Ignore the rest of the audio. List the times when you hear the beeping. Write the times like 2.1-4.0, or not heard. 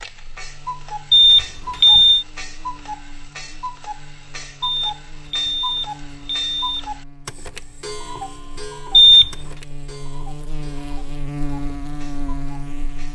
1.1-2.2, 4.6-6.8, 8.9-9.3.